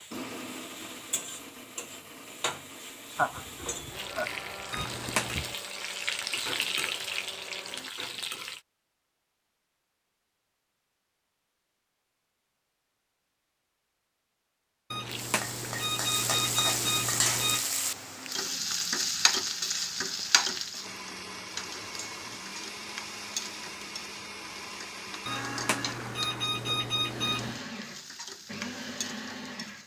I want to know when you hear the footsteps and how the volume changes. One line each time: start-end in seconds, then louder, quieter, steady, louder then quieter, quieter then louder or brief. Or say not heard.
not heard.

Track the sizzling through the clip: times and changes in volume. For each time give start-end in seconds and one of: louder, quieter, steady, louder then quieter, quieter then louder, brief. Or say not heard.
0.0-8.6 louder
15.0-29.8 quieter.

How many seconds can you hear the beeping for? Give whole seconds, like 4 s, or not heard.
6 s.